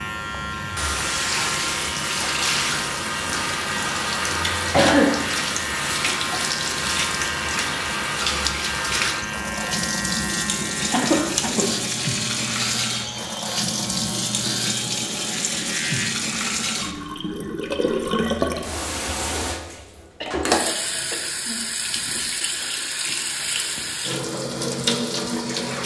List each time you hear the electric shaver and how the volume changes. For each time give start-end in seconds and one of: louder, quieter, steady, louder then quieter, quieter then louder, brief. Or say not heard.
0.0-16.1 steady.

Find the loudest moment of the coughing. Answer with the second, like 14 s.
5 s.